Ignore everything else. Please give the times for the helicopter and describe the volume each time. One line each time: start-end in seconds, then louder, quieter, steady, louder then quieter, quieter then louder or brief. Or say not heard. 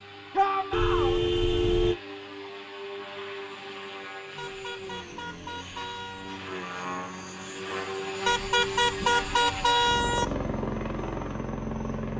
0.0-12.1 louder.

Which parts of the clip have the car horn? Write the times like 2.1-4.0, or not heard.
0.7-1.9, 4.3-6.4, 8.2-10.2.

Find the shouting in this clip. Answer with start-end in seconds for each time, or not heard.
0.3-1.2.